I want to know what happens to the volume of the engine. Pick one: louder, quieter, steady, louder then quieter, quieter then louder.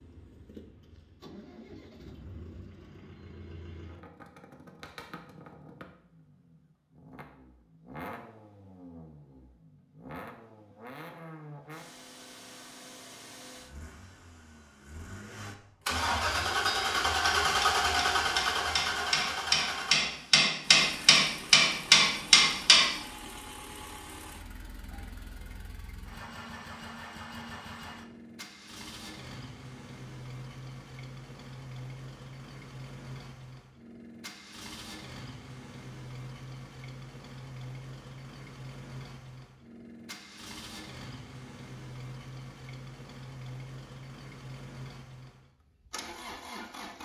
louder then quieter.